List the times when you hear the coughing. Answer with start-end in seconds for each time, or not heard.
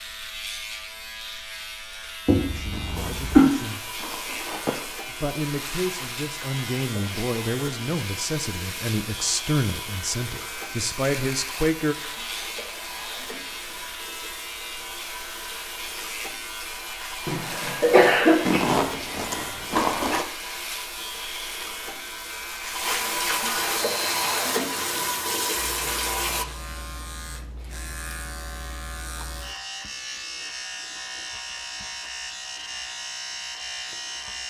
2.2-3.5, 17.2-18.6.